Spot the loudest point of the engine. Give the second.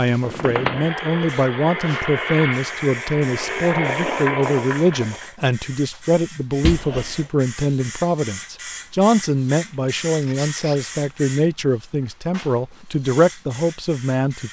4 s.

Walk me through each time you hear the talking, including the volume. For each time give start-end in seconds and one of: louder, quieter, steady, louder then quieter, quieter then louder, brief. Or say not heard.
0.0-14.4 steady.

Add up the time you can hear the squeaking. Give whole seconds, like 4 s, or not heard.
2 s.